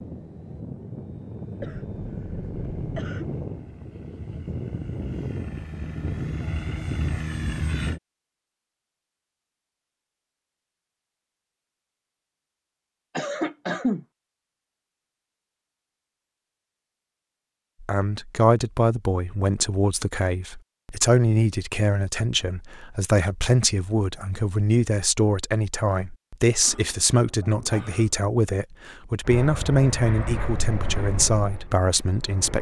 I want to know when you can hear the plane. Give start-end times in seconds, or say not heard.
0.0-8.0, 29.2-32.5.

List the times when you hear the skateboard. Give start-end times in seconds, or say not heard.
not heard.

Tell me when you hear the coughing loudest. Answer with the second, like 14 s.
14 s.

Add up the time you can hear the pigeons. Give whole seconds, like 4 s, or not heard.
not heard.